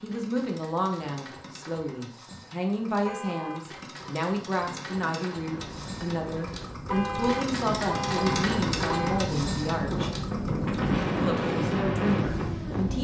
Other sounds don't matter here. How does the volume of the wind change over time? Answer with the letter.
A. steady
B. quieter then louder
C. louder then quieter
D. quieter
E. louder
E.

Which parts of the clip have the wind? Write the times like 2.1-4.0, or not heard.
5.4-12.9.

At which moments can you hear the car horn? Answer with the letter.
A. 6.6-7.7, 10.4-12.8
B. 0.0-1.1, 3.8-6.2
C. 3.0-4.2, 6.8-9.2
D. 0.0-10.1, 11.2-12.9
C.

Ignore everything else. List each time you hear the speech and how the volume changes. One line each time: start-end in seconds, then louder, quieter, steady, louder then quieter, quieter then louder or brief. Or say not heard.
0.0-10.1 steady
11.2-12.9 brief.